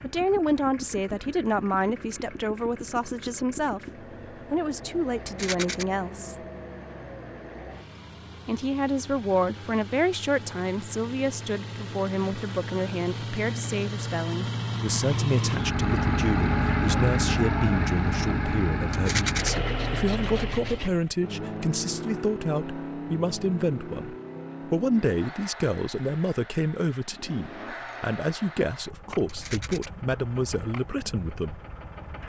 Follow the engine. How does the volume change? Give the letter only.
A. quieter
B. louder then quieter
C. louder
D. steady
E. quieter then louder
B.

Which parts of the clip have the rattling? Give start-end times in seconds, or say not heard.
5.2-5.8, 18.9-19.5, 29.2-29.9.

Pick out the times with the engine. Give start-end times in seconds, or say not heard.
0.0-32.2.